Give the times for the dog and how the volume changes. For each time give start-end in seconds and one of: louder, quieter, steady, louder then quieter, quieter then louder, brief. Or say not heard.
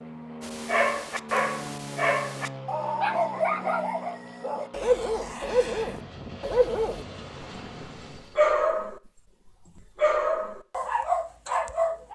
0.4-7.0 steady
8.2-9.0 brief
9.8-12.0 brief.